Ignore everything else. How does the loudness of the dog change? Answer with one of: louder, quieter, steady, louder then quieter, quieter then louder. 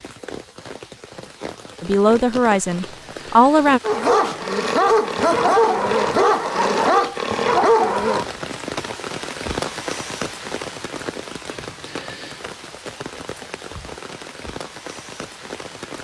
steady.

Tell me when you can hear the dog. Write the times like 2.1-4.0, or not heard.
3.8-8.3.